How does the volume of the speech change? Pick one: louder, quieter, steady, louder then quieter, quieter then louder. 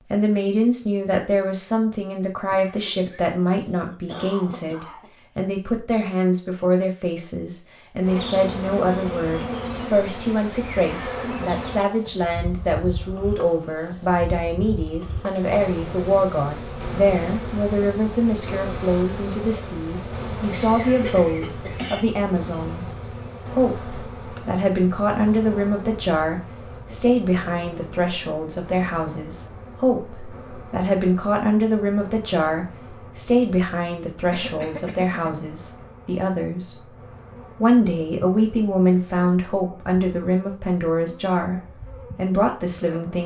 steady.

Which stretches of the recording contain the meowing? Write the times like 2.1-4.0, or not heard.
not heard.